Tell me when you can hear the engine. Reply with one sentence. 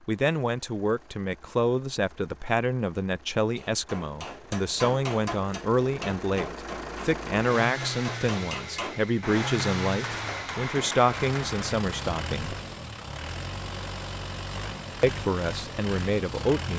You can hear the engine from 0.0 to 16.7 s.